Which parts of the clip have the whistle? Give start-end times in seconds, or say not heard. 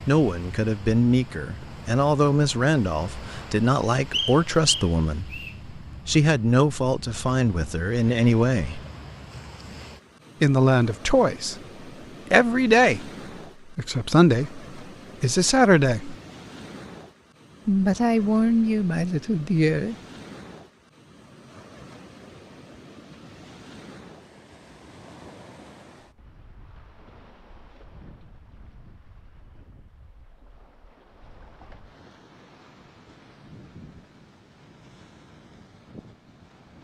4.1-5.5.